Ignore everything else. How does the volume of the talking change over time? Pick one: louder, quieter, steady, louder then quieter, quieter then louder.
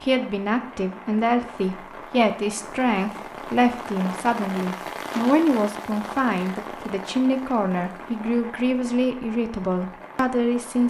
steady.